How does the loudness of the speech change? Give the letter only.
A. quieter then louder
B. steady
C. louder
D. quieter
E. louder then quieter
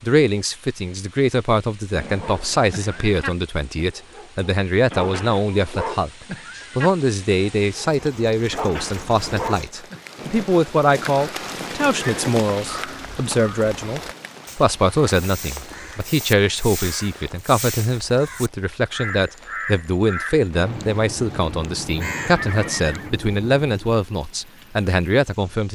B.